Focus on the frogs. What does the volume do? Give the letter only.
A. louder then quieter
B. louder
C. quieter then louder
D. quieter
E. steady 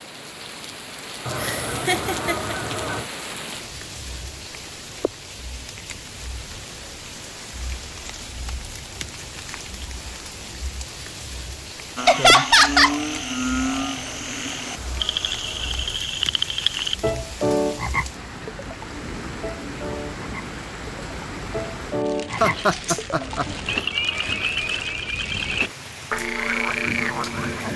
E.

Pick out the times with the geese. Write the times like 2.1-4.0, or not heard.
1.2-3.1, 13.9-16.0, 23.1-25.1.